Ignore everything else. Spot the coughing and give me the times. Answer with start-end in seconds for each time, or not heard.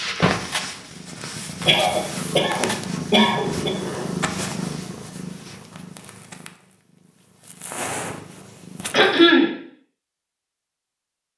1.6-3.7, 8.9-9.5.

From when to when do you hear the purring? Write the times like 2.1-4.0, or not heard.
0.0-9.2.